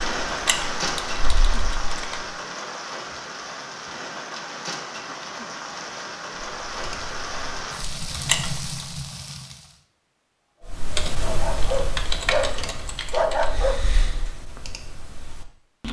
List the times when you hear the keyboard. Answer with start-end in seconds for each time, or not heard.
0.2-2.2, 6.7-9.0, 10.7-15.8.